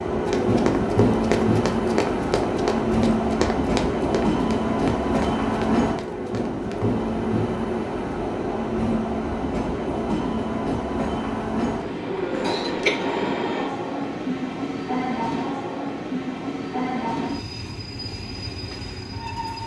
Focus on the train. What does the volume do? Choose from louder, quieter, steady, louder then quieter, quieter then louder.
quieter.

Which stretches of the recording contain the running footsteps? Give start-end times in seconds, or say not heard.
0.2-7.0.